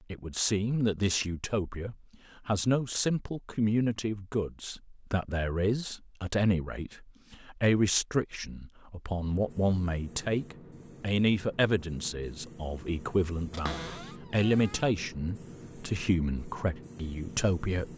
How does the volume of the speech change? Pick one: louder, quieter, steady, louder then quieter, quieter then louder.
steady.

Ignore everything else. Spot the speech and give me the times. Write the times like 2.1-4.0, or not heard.
0.1-17.9.